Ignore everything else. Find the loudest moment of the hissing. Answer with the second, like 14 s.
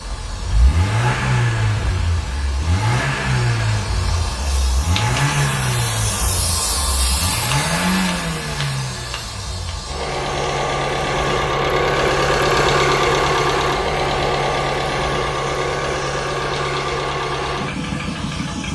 7 s.